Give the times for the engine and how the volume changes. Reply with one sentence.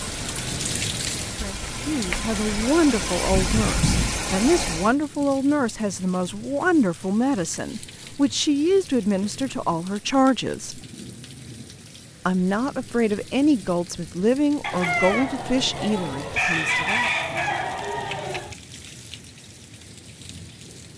You can hear the engine from 0.0 to 5.0 s, getting louder.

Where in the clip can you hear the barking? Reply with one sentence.
The barking can't be heard in this clip.